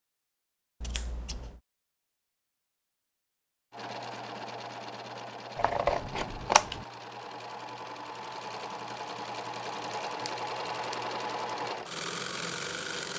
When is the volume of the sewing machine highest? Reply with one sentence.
The loudest moment of the sewing machine is at 11 seconds.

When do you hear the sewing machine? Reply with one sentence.
The sewing machine can be heard from 3.7 to 13.1 s.